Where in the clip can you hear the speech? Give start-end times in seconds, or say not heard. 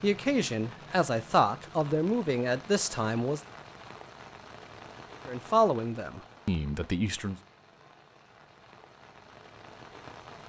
0.0-3.4, 5.2-7.3.